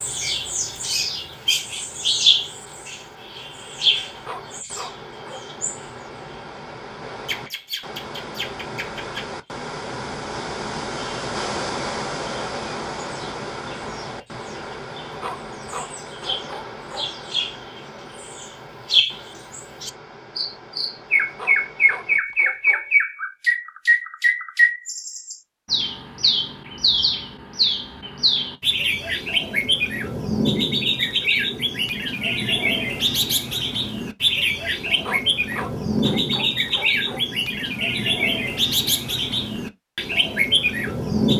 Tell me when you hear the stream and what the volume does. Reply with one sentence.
The stream can be heard from 0.0 to 22.2 s, getting louder then quieter.